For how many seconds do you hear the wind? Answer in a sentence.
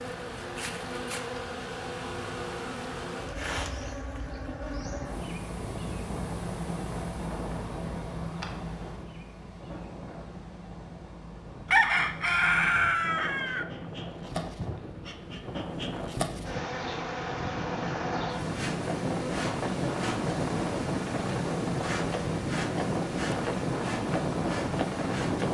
You can hear the wind for 21 seconds altogether.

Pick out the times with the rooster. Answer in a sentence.
The rooster can be heard from 11.7 to 13.7 s.